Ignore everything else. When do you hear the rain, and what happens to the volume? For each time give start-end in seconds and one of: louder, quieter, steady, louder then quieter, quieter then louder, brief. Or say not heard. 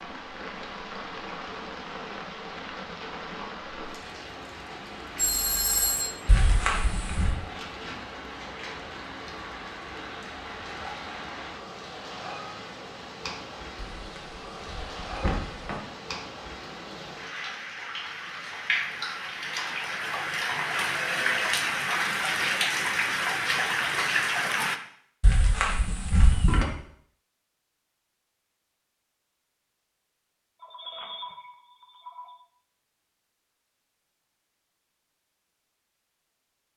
0.0-24.8 louder.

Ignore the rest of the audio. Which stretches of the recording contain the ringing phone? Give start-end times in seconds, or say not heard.
5.2-6.1, 20.9-21.5, 30.6-32.4.